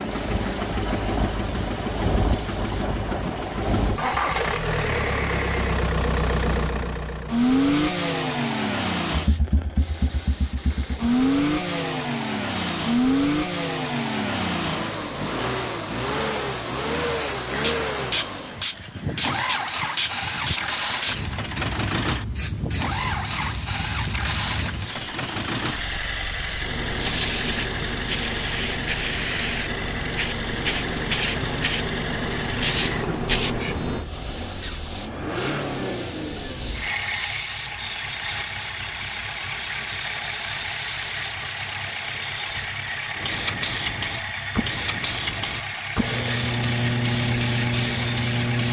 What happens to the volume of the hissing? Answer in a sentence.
The loudness of the hissing goes up.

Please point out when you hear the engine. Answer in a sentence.
The engine can be heard from 0.0 to 48.6 s.